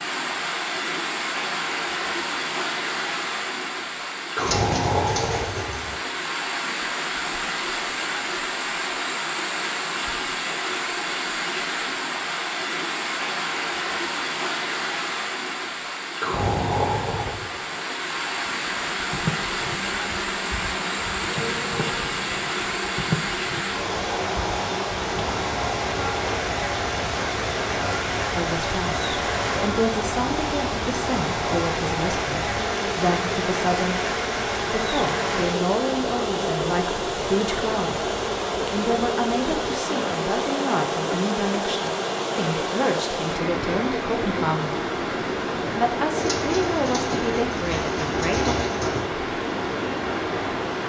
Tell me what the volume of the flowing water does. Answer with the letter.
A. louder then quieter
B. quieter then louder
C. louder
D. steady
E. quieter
D.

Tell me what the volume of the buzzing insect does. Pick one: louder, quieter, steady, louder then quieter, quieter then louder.
steady.